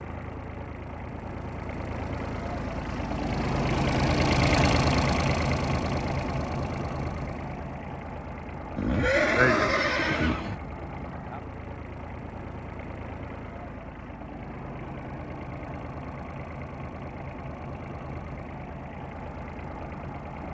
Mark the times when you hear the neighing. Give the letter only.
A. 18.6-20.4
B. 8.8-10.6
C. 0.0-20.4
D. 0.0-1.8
B.